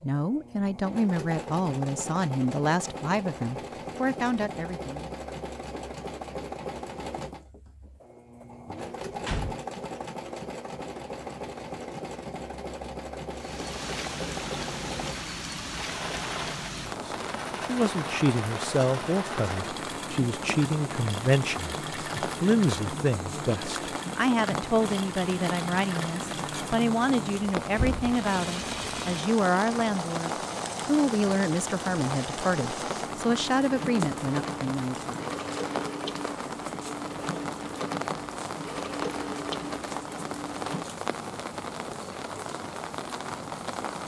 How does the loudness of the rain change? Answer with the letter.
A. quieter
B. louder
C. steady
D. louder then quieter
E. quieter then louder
C.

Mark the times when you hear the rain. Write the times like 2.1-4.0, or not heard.
13.3-44.0.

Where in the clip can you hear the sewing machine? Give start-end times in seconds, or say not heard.
0.0-40.9.